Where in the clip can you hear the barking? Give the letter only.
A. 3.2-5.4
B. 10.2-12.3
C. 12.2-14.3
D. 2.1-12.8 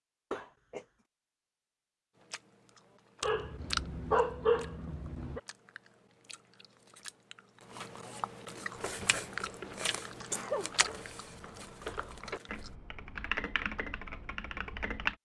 A.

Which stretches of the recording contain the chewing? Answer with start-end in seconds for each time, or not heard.
2.1-12.8.